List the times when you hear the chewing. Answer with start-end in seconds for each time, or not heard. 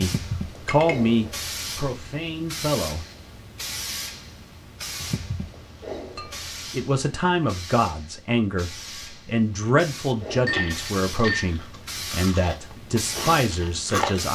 10.3-14.3.